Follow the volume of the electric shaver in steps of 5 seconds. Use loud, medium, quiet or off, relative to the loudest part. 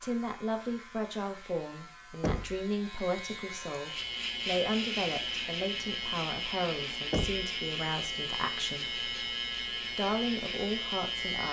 medium, loud, loud.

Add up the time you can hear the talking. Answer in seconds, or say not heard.
11 s.